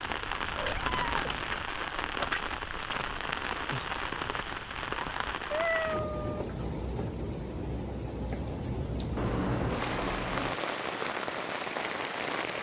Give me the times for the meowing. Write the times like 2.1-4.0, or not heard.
0.5-1.6, 5.5-6.5, 9.2-10.6.